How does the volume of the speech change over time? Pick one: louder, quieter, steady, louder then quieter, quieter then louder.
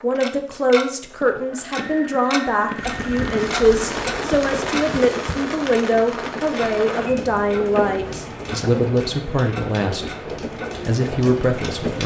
steady.